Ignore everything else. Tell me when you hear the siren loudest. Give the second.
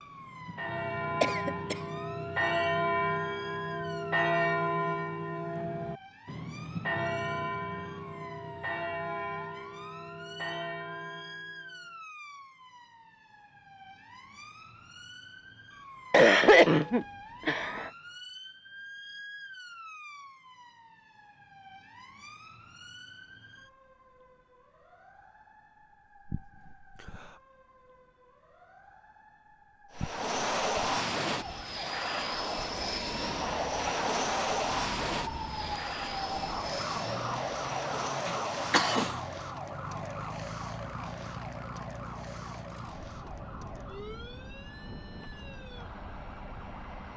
37 s.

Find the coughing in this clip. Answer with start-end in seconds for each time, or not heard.
1.2-1.8, 16.1-17.9, 38.2-39.1.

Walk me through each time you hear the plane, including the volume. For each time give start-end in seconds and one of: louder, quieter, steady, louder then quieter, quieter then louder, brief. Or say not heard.
29.9-47.1 quieter.